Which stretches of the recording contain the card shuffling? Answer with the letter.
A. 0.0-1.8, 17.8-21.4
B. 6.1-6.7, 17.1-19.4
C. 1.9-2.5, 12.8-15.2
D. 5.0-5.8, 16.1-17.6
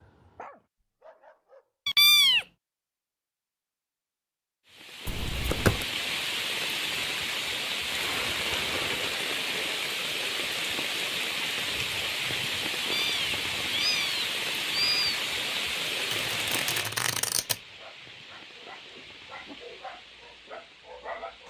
D.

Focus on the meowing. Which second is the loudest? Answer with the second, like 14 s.
2 s.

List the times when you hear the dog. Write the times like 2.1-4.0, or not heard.
0.0-1.8, 17.8-21.4.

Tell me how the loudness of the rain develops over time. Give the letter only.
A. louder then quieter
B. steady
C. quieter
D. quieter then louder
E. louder
C.